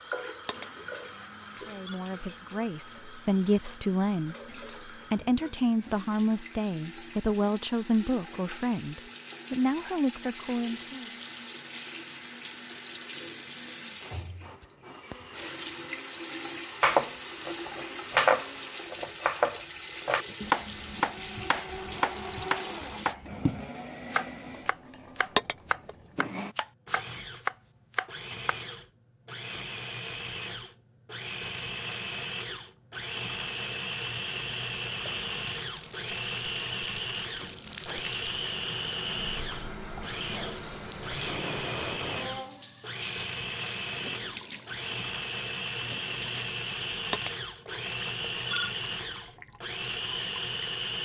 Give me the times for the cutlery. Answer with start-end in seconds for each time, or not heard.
not heard.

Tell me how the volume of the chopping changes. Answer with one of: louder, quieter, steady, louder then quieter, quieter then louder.
quieter.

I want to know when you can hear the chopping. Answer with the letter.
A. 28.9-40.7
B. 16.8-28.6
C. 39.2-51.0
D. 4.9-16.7
B.